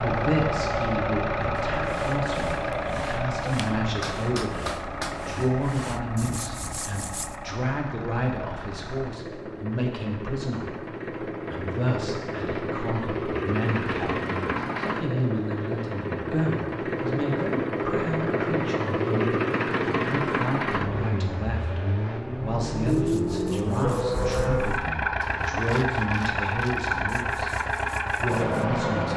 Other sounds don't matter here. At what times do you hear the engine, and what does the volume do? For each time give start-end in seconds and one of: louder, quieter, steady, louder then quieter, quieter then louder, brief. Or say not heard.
0.0-29.1 quieter then louder.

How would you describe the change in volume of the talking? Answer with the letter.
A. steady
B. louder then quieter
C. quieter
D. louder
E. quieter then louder
A.